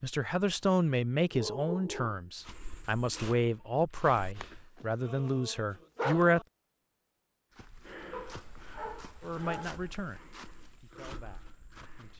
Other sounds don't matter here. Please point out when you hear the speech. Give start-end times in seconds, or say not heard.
0.0-6.4, 9.2-10.2, 10.8-12.1.